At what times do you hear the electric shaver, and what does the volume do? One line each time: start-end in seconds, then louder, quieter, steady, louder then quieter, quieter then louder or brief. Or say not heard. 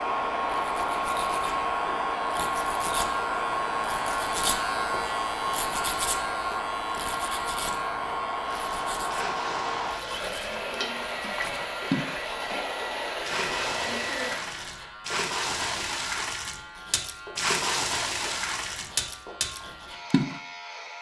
0.0-20.9 quieter.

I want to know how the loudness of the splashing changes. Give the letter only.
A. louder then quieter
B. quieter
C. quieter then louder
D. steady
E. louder
E.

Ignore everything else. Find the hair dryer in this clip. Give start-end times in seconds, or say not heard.
0.0-14.4.